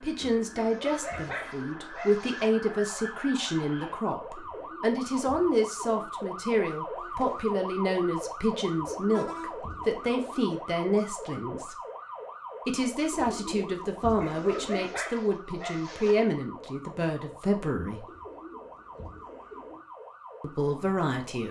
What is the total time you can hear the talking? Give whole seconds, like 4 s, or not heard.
18 s.